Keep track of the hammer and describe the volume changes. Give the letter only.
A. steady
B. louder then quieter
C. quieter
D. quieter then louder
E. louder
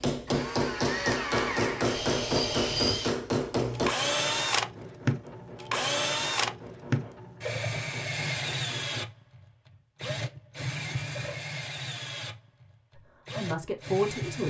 C.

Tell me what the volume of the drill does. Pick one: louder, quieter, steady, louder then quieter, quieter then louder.
quieter.